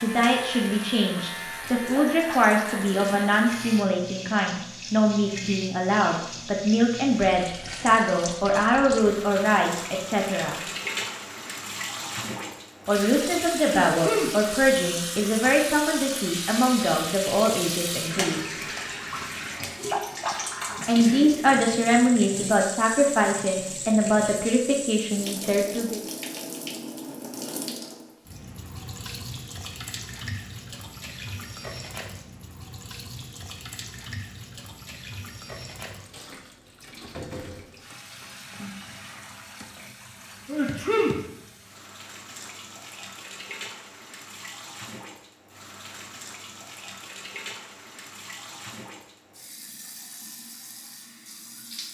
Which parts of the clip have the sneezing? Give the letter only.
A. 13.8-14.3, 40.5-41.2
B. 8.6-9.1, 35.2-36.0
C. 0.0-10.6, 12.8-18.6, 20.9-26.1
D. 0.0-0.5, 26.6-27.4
A.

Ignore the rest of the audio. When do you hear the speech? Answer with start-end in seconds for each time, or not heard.
0.0-10.6, 12.8-18.6, 20.9-26.1.